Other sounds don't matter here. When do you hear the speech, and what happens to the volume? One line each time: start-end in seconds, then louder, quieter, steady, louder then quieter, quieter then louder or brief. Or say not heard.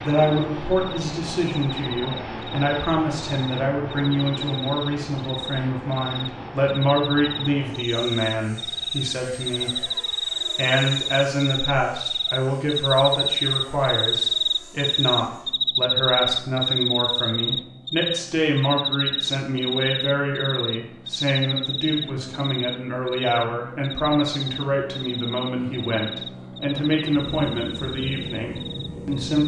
0.0-29.4 steady.